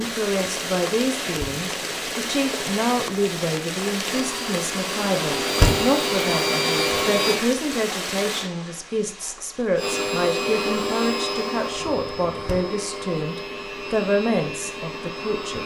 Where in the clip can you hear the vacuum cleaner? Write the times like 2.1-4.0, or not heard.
4.0-7.5, 9.8-15.6.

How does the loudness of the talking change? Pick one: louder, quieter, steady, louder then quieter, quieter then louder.
steady.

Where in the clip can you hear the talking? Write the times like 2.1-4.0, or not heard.
0.0-15.6.